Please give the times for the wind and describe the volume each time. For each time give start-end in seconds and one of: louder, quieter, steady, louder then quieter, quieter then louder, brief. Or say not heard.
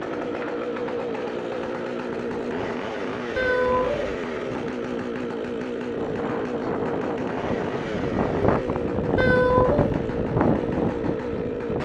0.0-11.8 louder.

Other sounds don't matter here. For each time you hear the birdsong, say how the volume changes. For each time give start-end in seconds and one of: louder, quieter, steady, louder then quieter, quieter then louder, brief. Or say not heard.
not heard.